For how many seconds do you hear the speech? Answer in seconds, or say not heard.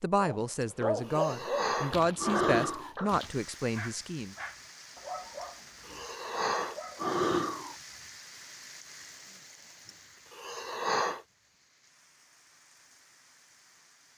4 s.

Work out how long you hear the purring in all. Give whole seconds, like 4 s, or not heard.
not heard.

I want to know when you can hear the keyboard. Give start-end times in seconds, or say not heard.
not heard.